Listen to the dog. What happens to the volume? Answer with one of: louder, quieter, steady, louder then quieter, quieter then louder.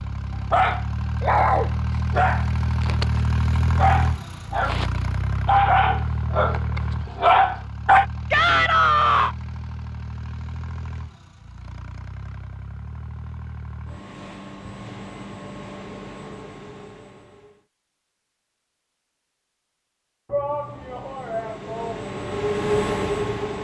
quieter then louder.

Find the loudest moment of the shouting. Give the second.
9 s.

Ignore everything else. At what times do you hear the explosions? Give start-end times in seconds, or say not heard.
not heard.